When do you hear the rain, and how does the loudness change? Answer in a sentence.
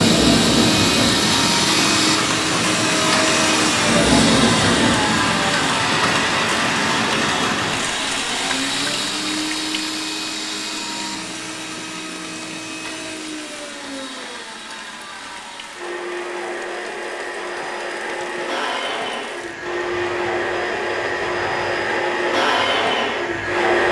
The rain can be heard from 0.0 to 23.8 s, getting quieter.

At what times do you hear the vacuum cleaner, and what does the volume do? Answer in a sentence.
The vacuum cleaner can be heard from 0.0 to 23.8 s, getting quieter then louder.